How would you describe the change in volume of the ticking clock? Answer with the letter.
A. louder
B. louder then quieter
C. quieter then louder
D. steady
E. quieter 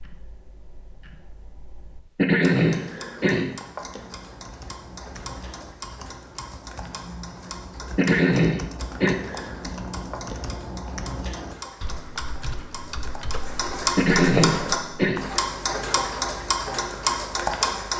A.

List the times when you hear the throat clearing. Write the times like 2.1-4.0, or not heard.
2.1-3.5, 8.0-9.2, 13.9-15.2.